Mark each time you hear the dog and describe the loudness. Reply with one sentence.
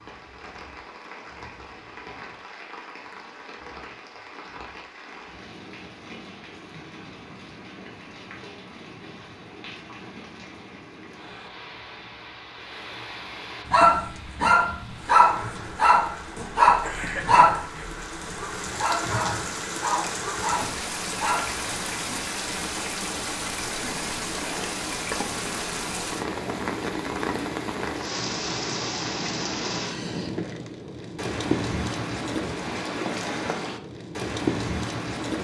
You can hear the dog from 13.7 to 21.6 s, getting quieter.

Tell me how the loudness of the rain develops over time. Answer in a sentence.
The loudness of the rain goes up.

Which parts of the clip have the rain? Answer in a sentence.
You can hear the rain from 0.0 to 35.3 s.